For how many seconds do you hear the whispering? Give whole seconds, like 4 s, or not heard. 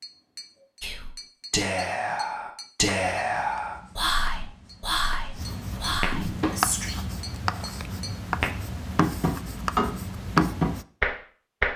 6 s.